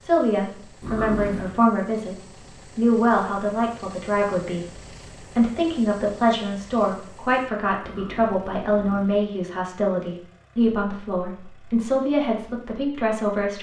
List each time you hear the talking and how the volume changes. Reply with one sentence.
You can hear the talking briefly from 0.0 to 2.1 s; and from 2.8 to 13.5 s, at a steady volume.